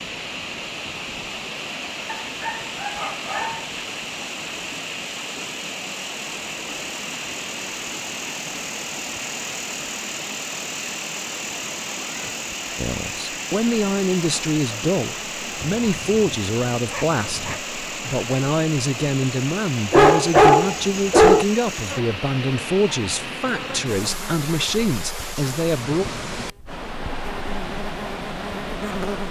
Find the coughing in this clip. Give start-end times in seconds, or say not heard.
not heard.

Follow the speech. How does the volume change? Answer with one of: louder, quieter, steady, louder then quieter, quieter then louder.
steady.